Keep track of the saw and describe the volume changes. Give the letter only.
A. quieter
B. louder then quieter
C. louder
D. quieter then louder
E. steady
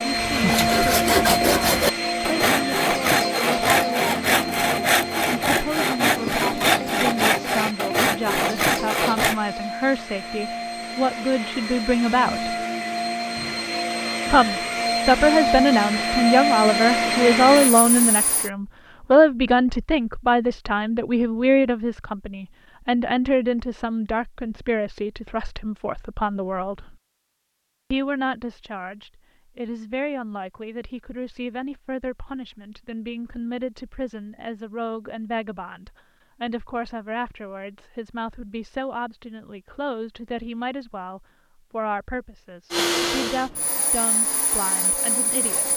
E.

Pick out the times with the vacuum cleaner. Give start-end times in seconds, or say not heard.
0.0-18.5, 42.7-45.7.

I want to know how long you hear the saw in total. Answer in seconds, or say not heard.
9 s.